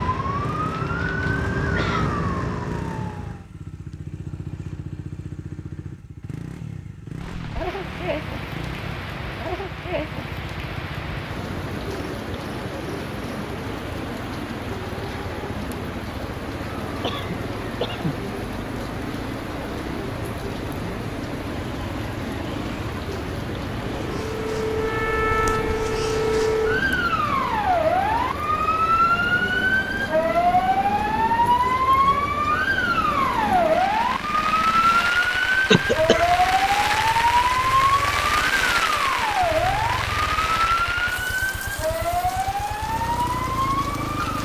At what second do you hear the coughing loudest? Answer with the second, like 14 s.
36 s.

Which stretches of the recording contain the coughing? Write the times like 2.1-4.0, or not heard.
0.8-2.1, 17.0-18.1, 35.7-36.4.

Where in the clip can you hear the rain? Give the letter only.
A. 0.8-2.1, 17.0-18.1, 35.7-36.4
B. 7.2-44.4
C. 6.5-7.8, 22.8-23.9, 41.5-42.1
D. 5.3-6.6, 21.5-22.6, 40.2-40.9
B.